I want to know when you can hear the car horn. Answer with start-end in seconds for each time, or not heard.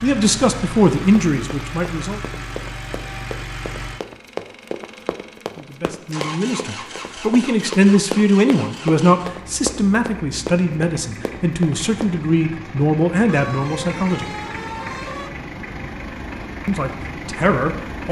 13.2-15.3.